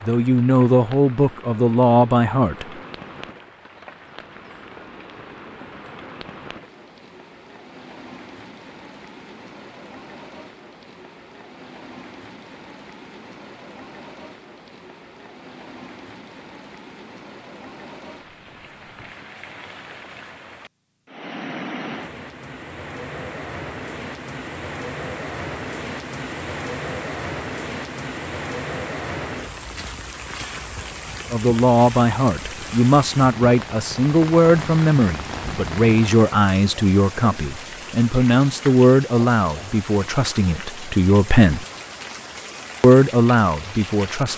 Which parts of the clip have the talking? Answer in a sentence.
You can hear the talking from 0.0 to 2.6 s, from 31.3 to 41.6 s and from 42.8 to 44.3 s.